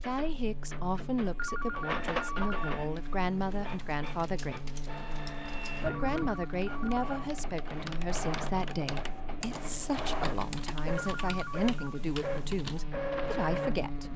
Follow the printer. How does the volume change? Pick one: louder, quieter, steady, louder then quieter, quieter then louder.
quieter then louder.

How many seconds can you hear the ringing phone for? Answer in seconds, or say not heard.
4 s.